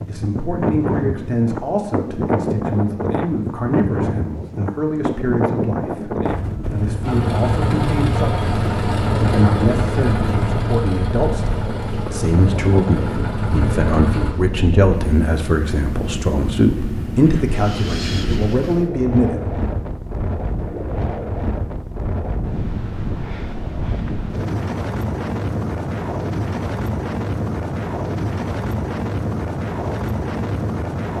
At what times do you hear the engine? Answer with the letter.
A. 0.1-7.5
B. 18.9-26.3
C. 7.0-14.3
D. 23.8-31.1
C.